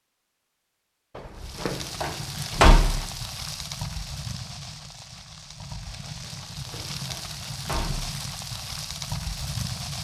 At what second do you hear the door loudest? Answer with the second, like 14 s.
3 s.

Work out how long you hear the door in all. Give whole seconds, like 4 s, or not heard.
3 s.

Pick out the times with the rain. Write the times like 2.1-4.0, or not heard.
1.4-9.9.